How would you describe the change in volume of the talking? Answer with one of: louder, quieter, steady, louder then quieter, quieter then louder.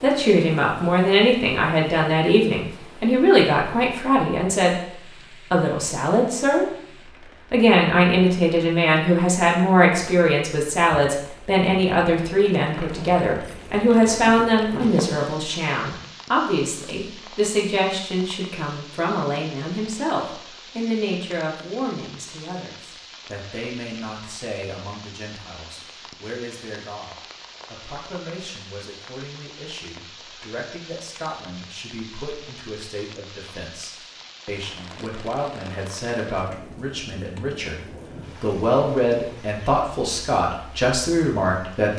quieter then louder.